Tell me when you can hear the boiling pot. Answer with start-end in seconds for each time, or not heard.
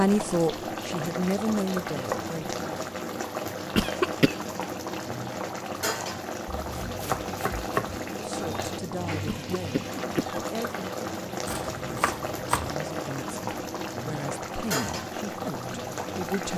0.0-16.5.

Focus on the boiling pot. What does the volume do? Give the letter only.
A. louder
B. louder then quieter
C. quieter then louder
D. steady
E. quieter
D.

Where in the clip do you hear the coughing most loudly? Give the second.
4 s.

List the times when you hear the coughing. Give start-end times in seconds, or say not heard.
3.8-4.3, 9.2-10.4.